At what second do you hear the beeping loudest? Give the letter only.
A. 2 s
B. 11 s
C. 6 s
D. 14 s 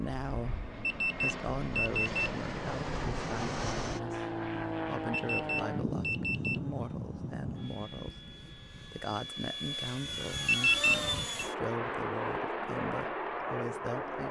B.